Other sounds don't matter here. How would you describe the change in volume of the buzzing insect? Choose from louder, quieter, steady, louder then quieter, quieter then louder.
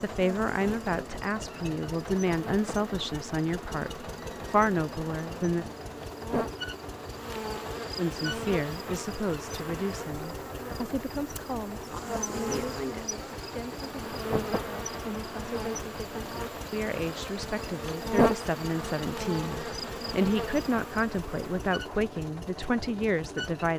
louder.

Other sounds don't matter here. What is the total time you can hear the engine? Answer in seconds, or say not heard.
24 s.